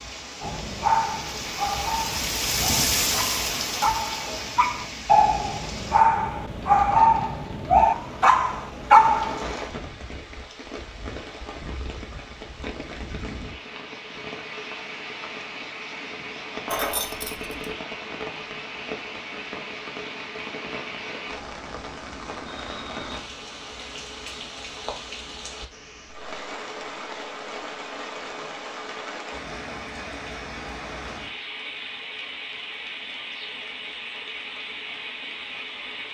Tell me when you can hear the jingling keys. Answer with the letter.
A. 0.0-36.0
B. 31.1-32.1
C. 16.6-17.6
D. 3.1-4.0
C.